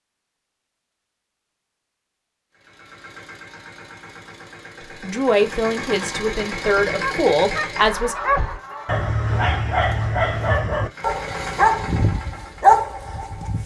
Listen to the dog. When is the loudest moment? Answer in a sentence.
The volume of the dog peaks at 13 seconds.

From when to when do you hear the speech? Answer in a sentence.
The speech can be heard from 5.0 to 8.2 s.